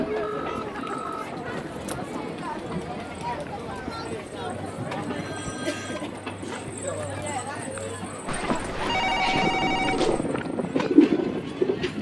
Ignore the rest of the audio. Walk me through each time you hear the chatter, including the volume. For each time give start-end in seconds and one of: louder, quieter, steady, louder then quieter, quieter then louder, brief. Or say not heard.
0.0-11.9 quieter.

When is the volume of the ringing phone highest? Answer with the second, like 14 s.
9 s.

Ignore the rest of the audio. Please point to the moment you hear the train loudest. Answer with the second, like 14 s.
11 s.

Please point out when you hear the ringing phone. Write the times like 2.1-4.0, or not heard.
0.2-1.2, 5.2-6.0, 8.2-10.2.